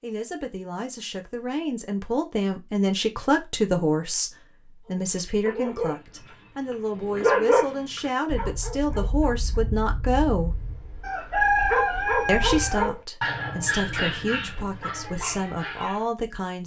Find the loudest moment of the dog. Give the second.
7 s.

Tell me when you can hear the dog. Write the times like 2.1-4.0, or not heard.
4.8-16.0.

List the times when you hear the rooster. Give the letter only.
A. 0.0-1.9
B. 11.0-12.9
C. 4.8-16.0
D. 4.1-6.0
B.